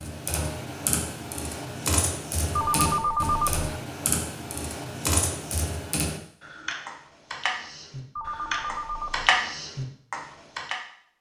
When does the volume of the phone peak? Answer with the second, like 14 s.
3 s.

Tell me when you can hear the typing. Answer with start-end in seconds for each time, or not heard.
0.0-10.8.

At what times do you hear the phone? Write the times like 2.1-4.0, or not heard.
2.5-3.6, 8.2-9.3.